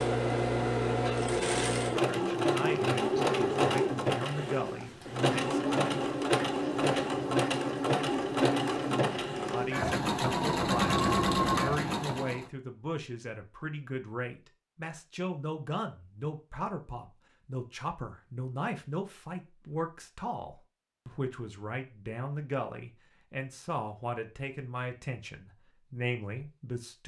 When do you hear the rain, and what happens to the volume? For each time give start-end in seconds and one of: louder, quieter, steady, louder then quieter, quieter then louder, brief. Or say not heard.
not heard.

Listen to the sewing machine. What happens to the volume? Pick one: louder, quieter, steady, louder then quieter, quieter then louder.
steady.